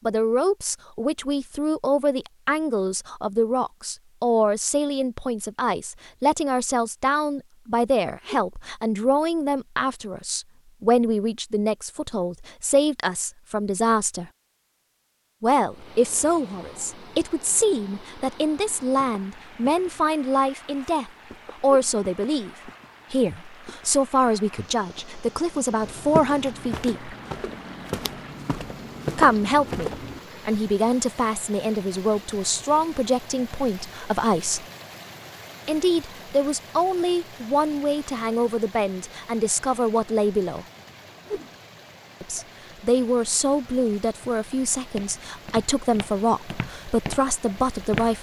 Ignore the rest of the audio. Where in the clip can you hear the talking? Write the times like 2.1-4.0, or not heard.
0.1-14.3, 15.4-27.1, 29.1-34.6, 35.6-40.6, 42.2-48.1.